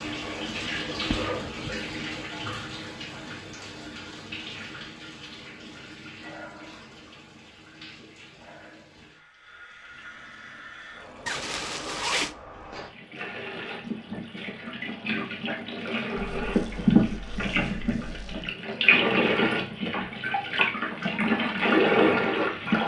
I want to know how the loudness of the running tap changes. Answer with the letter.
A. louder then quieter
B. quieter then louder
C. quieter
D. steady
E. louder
B.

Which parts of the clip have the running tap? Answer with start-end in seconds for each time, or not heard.
0.0-22.8.